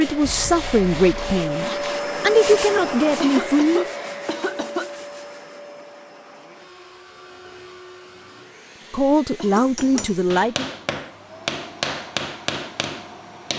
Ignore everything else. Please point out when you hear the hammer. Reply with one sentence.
The hammer can be heard from 9.6 to 13.5 s.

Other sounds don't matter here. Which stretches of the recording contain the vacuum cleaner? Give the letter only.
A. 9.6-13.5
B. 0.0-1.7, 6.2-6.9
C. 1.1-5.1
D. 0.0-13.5
D.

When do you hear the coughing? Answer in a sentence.
The coughing can be heard from 3.2 to 4.9 s and from 9.3 to 10.1 s.